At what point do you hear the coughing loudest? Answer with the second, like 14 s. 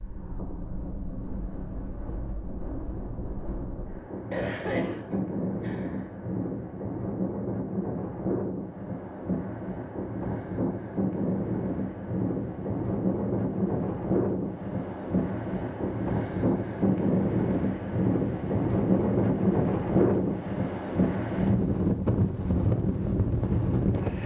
5 s.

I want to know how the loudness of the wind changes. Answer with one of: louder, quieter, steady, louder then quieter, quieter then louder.
louder.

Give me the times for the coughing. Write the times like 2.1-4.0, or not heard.
4.3-6.1.